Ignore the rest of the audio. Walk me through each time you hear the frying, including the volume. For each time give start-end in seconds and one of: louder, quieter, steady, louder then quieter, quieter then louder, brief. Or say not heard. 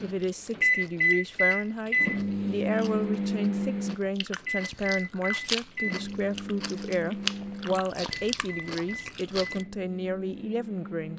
not heard.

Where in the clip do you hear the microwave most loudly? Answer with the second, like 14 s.
1 s.